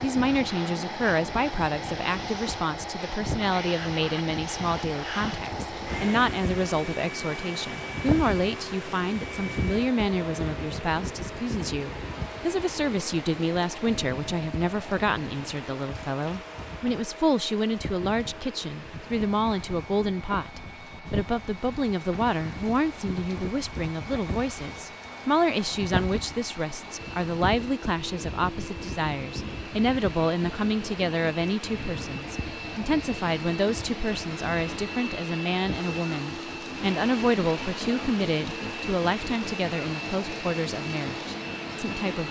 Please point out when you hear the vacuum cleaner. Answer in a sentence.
You can hear the vacuum cleaner from 0.0 to 42.2 s.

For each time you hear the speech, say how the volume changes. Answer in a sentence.
The speech can be heard from 0.0 to 42.2 s, at a steady volume.